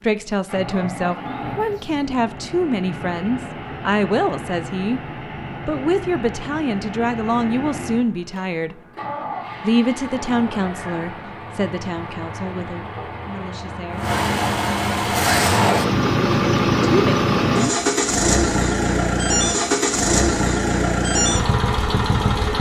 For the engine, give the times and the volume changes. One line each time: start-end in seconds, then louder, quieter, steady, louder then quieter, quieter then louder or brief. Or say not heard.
0.0-22.5 louder.